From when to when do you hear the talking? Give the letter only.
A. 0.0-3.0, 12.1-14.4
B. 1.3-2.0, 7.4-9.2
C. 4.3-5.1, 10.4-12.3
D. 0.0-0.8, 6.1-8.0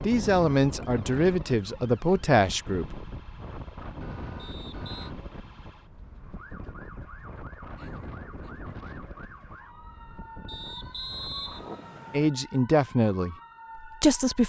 A.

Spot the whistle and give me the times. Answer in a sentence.
The whistle can be heard from 4.3 to 5.1 s and from 10.4 to 12.3 s.